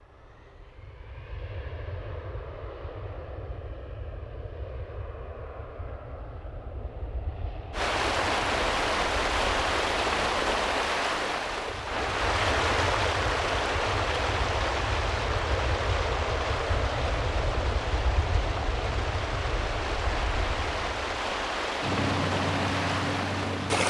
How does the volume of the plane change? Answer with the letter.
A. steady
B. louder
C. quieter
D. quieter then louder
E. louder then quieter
B.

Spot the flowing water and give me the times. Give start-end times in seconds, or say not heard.
7.7-23.8.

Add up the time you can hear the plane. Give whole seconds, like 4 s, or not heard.
24 s.